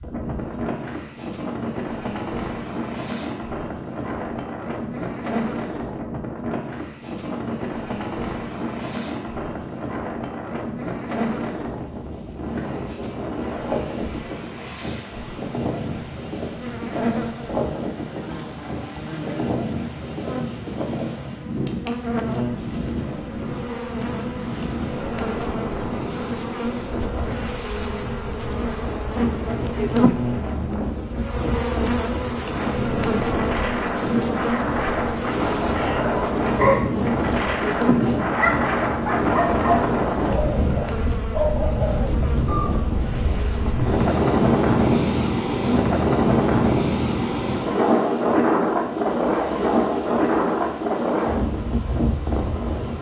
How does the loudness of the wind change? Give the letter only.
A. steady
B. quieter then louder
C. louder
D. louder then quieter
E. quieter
C.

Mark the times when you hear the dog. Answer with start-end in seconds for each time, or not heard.
35.7-42.7.